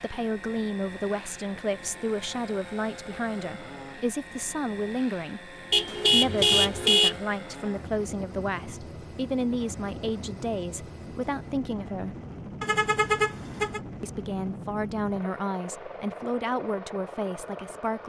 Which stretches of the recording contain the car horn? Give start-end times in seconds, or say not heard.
5.7-7.2, 12.6-13.8.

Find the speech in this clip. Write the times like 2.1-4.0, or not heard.
0.0-12.2, 14.0-18.0.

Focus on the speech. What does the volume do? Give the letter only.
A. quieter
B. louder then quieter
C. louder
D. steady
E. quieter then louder
D.